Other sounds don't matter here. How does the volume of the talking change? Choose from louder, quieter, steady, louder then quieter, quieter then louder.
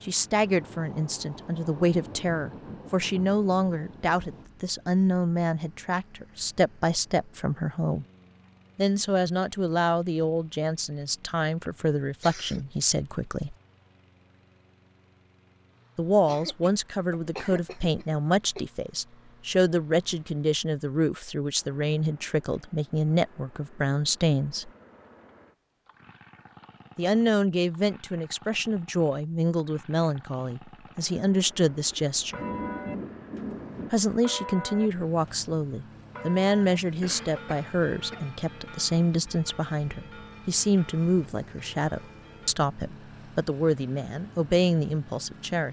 steady.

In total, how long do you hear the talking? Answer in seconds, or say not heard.
39 s.